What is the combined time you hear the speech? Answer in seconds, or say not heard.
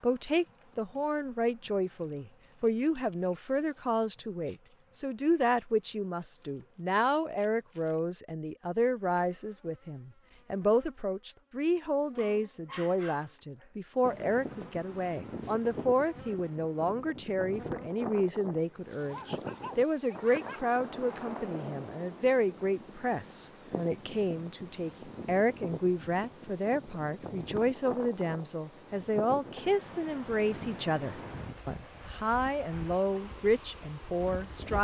35 s.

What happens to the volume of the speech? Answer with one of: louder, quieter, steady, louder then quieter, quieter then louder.
steady.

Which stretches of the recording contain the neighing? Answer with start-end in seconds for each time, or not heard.
not heard.